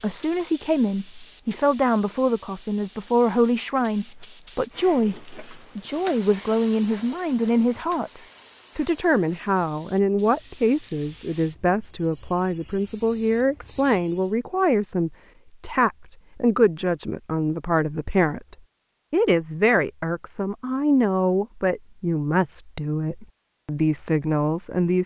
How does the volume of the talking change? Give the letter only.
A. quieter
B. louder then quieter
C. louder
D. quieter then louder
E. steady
E.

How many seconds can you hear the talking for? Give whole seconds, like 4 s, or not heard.
25 s.